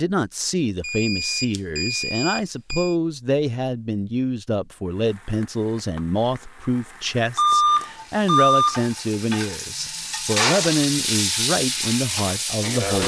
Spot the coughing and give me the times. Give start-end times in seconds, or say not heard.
not heard.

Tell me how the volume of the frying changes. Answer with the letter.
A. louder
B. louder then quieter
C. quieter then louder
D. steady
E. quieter
A.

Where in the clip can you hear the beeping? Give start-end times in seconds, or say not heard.
0.8-3.0, 7.3-8.8.